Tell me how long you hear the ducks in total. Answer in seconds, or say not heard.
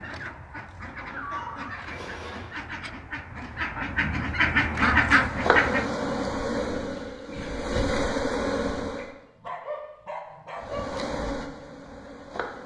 6 s.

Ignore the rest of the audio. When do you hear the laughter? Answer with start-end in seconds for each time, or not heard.
not heard.